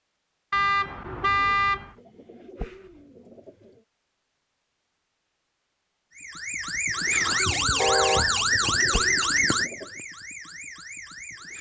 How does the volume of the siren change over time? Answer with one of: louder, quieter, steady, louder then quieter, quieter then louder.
quieter.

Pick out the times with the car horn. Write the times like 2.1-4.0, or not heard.
0.5-1.9, 7.8-8.3.